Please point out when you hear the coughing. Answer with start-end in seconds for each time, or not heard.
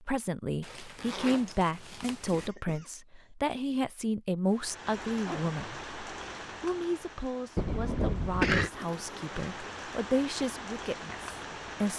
2.3-2.9, 7.5-8.7.